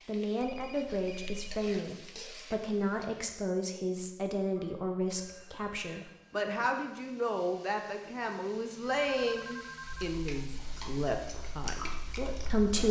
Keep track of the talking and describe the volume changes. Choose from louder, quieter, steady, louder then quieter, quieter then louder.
steady.